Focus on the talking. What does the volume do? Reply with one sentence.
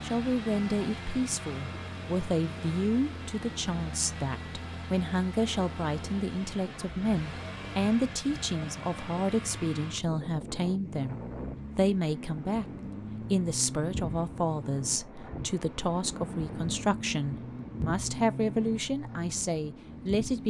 The loudness of the talking stays about the same.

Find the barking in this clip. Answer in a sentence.
You can't hear the barking here.